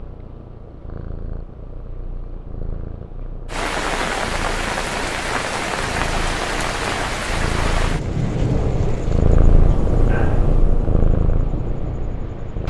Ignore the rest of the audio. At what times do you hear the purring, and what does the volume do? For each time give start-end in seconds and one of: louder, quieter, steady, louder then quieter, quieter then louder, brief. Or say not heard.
0.0-12.6 louder.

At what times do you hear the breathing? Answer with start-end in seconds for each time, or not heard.
not heard.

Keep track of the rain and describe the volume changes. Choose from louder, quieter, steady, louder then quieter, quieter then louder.
quieter.